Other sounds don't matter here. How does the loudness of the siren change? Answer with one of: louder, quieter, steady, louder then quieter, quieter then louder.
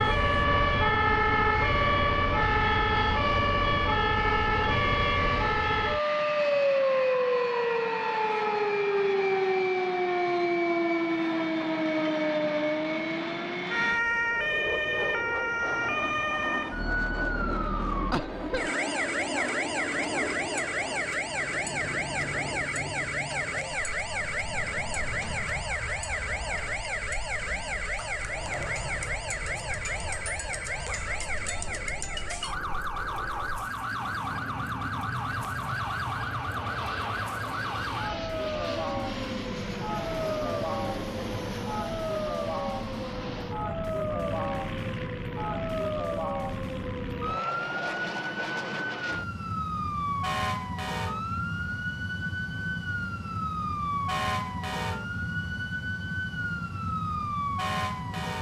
quieter.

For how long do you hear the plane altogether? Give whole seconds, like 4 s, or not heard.
58 s.